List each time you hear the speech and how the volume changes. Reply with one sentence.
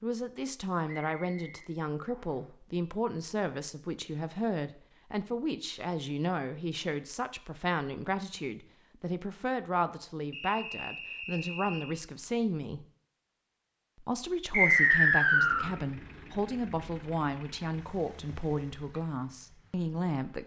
You can hear the speech from 0.0 to 12.8 s, at a steady volume; and from 14.0 to 20.4 s, at a steady volume.